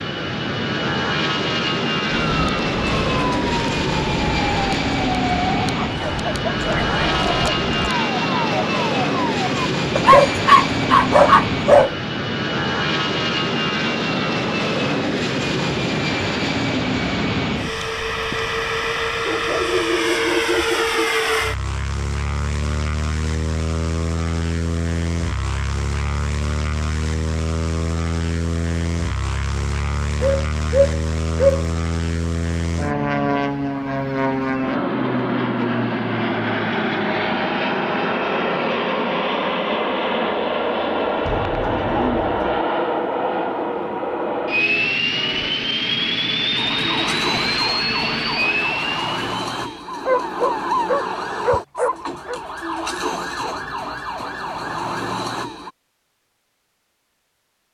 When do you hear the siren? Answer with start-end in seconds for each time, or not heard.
2.0-9.6, 46.5-55.7.